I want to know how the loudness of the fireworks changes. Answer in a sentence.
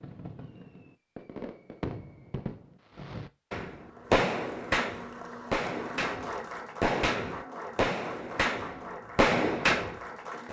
The loudness of the fireworks goes up.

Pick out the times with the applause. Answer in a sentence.
The applause can be heard from 3.8 to 10.4 s.